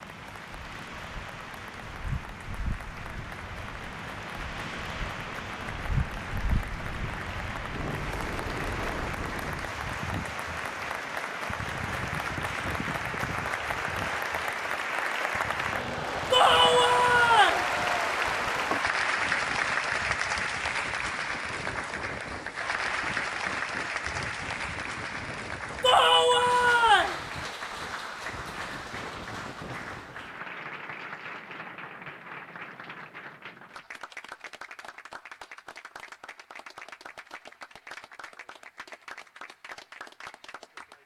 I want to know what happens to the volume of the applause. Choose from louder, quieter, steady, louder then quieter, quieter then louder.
louder then quieter.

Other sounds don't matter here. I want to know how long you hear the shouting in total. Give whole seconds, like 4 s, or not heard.
3 s.